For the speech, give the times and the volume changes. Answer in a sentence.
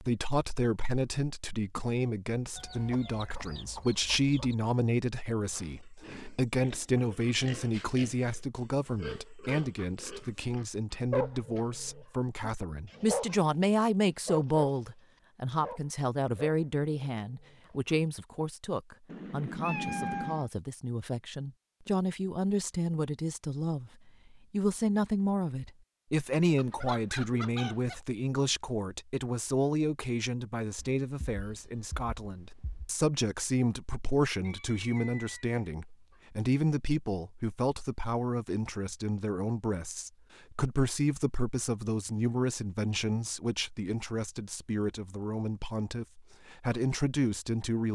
You can hear the speech from 0.0 to 47.9 s, at a steady volume.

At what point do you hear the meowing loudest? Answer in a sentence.
The loudest moment of the meowing is at 20 seconds.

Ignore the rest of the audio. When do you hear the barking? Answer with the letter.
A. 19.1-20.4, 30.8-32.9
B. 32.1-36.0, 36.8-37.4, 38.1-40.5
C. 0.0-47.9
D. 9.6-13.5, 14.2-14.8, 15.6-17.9
D.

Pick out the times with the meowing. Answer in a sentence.
The meowing can be heard from 19.1 to 20.4 s and from 30.8 to 32.9 s.